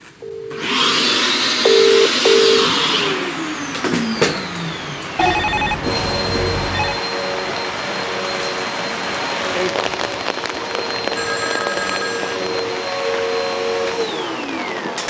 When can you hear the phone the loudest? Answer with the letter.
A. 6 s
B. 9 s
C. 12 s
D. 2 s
D.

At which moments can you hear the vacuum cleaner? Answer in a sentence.
You can hear the vacuum cleaner from 0.0 to 15.0 s.